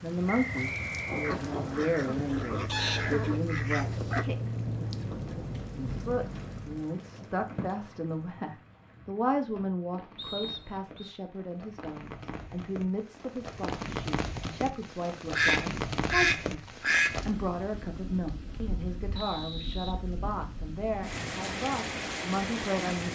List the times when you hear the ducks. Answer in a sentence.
The ducks can be heard from 1.2 to 4.2 s and from 15.3 to 17.2 s.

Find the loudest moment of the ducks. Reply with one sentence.
The volume of the ducks peaks at 16 seconds.